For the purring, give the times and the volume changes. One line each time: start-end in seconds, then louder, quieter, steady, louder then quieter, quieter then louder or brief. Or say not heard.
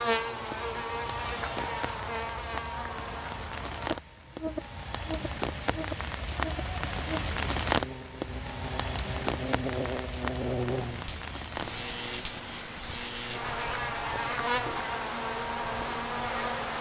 not heard.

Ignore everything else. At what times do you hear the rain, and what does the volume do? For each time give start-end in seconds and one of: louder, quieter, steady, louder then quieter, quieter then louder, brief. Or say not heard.
0.0-16.7 louder then quieter.